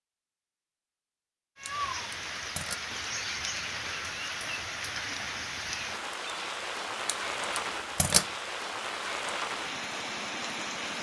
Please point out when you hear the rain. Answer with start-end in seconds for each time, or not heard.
1.6-10.9.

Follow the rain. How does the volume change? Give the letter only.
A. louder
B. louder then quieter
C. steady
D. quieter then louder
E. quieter
C.